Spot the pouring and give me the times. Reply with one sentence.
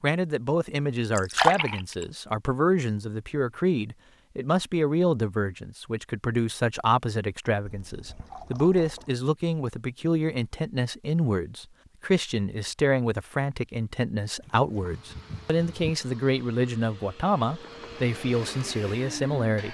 You can hear the pouring from 1.1 to 2.0 s, from 7.7 to 9.2 s and from 14.4 to 15.9 s.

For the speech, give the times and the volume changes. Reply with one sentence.
The speech can be heard from 0.0 to 19.6 s, at a steady volume.